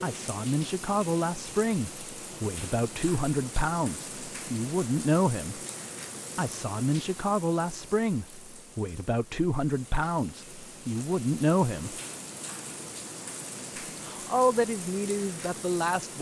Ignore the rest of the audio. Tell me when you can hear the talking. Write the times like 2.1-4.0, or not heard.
0.0-5.6, 6.3-11.9, 14.1-16.1.